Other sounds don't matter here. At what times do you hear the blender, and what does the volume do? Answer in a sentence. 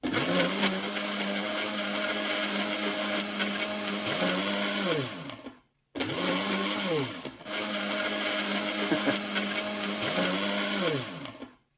You can hear the blender from 0.0 to 11.5 s, at a steady volume.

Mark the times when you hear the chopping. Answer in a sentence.
The chopping can't be heard in this clip.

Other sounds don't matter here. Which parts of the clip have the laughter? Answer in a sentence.
You can hear the laughter from 8.8 to 9.2 s.